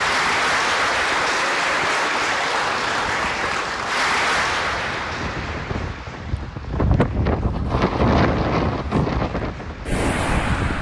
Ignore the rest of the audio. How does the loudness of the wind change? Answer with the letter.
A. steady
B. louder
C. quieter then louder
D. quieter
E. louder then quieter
B.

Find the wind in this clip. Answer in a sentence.
The wind can be heard from 0.0 to 10.7 s.